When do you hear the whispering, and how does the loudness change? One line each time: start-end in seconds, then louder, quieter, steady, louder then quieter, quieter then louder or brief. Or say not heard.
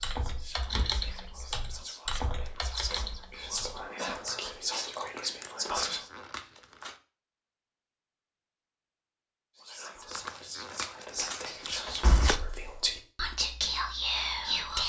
0.0-6.1 louder
9.6-14.8 louder.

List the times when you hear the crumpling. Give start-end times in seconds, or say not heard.
2.1-2.8, 5.7-7.0, 10.1-12.4.